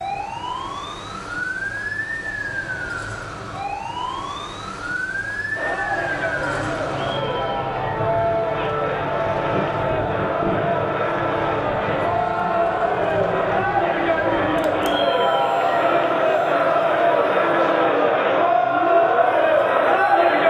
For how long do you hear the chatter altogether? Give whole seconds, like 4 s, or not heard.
15 s.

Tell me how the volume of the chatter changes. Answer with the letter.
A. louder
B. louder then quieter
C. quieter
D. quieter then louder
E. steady
A.